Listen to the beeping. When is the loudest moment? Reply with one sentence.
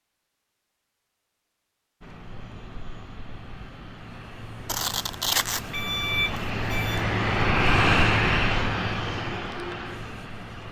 The loudest moment of the beeping is at 5 seconds.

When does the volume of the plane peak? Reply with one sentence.
The volume of the plane peaks at 8 seconds.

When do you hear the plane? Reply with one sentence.
The plane can be heard from 2.0 to 10.6 s.